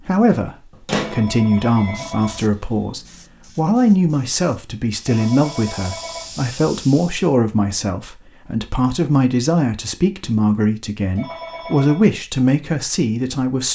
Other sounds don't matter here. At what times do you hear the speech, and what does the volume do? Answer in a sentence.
You can hear the speech from 0.0 to 13.6 s, at a steady volume.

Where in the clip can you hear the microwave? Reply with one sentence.
The microwave can be heard from 0.8 to 1.9 s.